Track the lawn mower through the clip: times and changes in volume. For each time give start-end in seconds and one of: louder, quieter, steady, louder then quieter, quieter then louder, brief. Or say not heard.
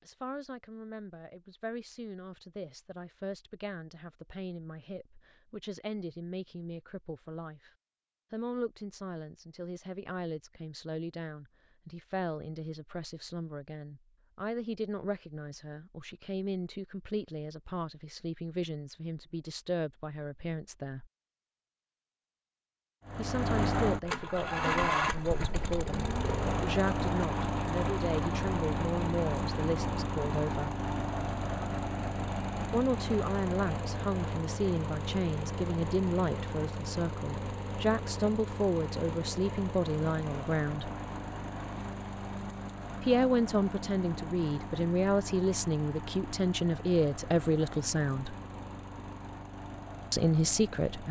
23.1-51.0 quieter.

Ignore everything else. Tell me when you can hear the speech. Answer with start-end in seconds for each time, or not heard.
0.0-7.7, 8.3-21.1, 23.1-30.8, 32.7-40.9, 43.0-48.4, 50.1-51.0.